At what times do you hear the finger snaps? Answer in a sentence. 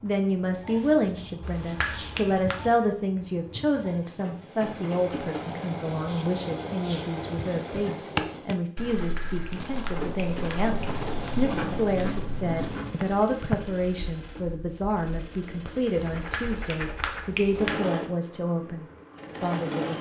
The finger snaps can be heard from 1.4 to 2.6 s, from 8.9 to 10.8 s and from 16.1 to 17.9 s.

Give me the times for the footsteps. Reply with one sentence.
You can hear the footsteps from 7.7 to 13.7 s.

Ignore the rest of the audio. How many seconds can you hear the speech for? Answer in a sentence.
You can hear the speech for 20 seconds altogether.